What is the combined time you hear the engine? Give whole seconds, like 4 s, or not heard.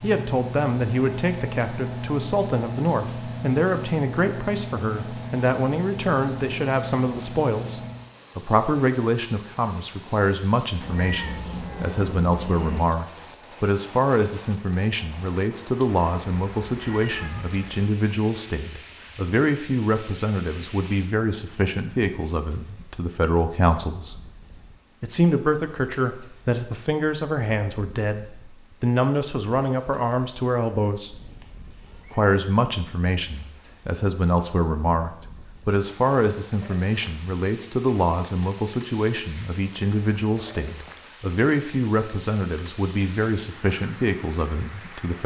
8 s.